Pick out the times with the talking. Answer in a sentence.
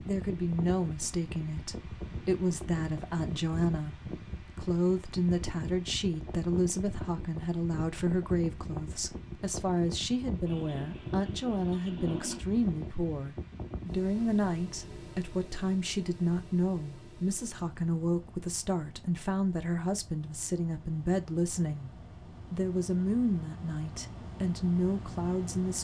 The talking can be heard from 0.0 to 21.9 s and from 22.5 to 25.8 s.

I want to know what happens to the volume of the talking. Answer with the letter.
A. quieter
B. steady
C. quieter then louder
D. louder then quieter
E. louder
B.